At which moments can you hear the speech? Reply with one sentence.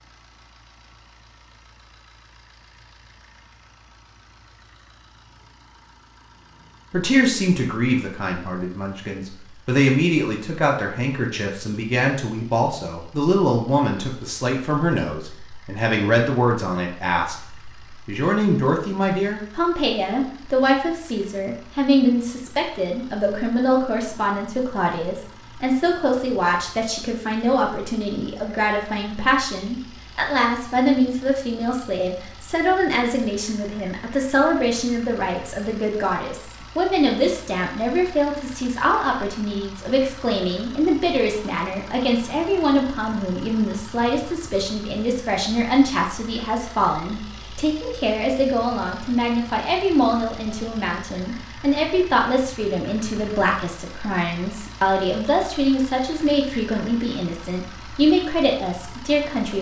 You can hear the speech from 6.9 to 59.5 s.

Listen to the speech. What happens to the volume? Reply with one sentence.
The volume of the speech stays about the same.